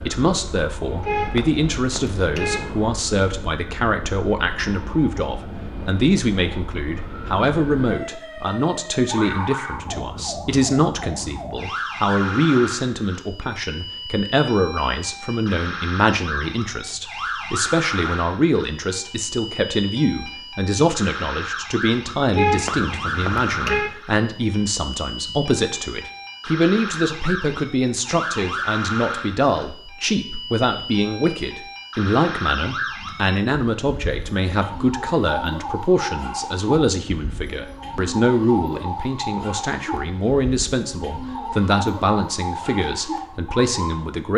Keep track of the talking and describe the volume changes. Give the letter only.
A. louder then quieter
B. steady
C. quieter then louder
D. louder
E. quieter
B.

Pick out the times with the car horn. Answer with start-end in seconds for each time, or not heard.
1.0-2.8, 22.3-23.9.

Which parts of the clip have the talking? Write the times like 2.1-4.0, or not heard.
0.0-44.3.